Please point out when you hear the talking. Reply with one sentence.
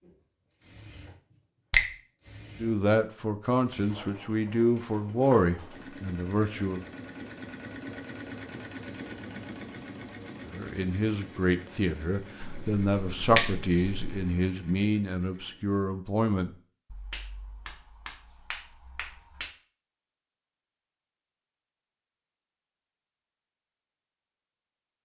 You can hear the talking from 2.5 to 6.8 s and from 10.4 to 16.5 s.